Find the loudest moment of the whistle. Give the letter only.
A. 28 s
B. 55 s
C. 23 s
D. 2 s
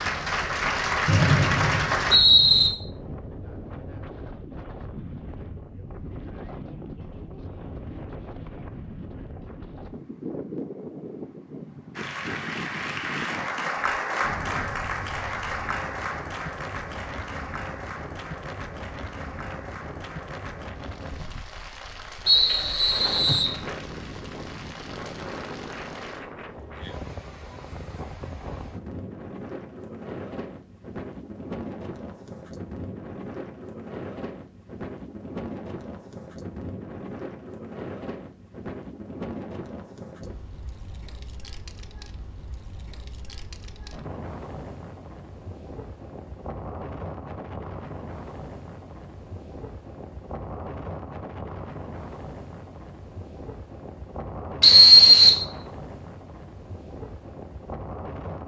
B.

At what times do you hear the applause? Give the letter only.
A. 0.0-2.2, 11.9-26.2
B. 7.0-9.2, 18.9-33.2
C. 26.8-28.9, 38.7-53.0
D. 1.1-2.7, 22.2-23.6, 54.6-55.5
A.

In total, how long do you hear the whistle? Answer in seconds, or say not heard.
4 s.